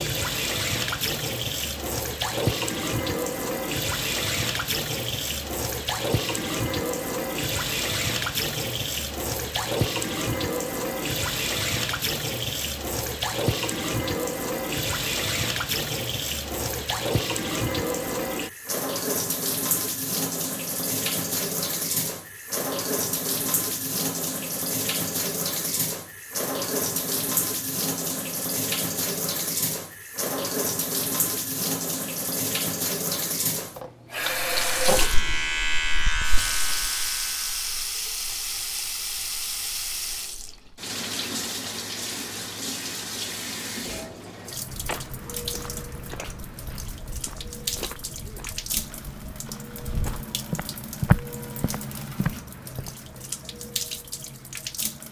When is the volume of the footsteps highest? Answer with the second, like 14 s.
51 s.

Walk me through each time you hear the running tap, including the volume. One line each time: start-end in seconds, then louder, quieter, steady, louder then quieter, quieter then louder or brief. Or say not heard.
0.0-55.0 quieter.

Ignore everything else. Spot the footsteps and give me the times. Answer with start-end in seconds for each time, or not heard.
44.6-53.0.